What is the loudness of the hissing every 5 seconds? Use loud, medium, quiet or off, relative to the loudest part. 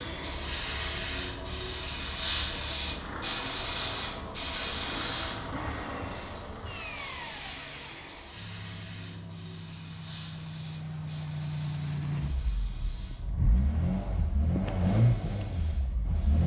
loud, medium, quiet, quiet.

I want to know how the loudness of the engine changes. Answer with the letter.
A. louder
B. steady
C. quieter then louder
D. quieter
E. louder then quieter
A.